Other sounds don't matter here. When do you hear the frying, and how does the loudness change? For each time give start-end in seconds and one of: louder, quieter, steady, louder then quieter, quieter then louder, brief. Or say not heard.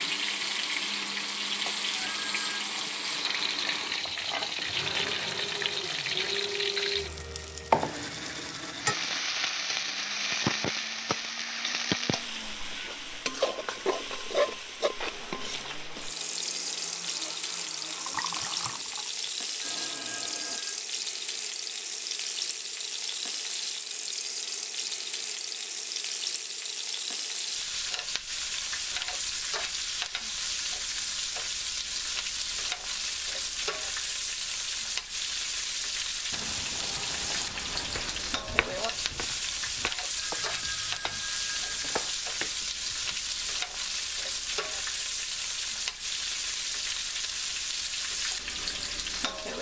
0.0-49.5 steady.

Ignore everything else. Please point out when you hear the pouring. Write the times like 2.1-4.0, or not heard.
17.9-19.1, 36.3-38.1.